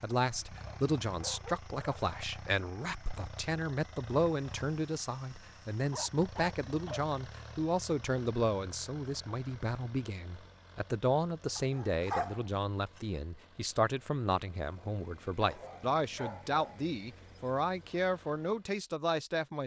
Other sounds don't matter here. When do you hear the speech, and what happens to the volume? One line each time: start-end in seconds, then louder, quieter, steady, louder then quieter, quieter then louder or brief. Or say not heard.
0.0-19.6 steady.